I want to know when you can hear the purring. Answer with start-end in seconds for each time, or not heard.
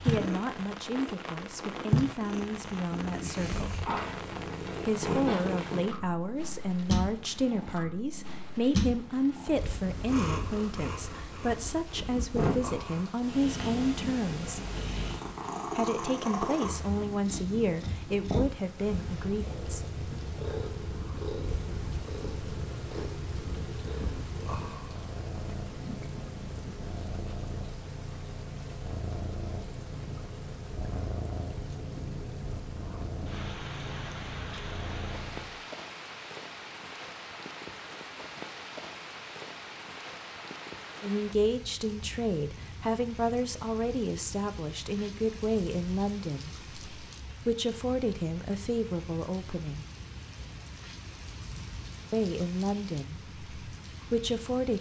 0.0-35.5.